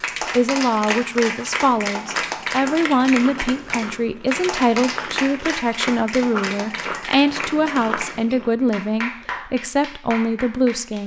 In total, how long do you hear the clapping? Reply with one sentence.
The clapping can be heard for 11 seconds in total.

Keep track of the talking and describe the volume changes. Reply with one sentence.
The loudness of the talking stays about the same.